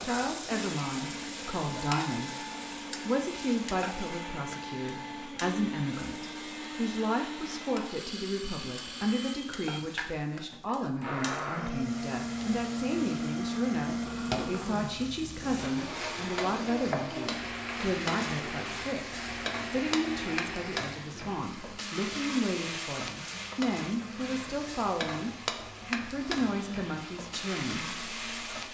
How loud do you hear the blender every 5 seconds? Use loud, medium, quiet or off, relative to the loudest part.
medium, medium, loud, loud, medium, quiet.